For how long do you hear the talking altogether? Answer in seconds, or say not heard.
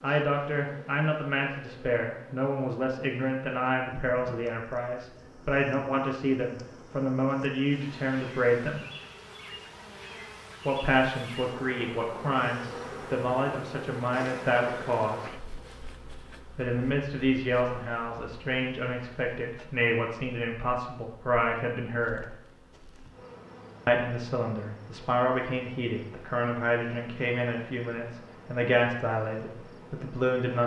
26 s.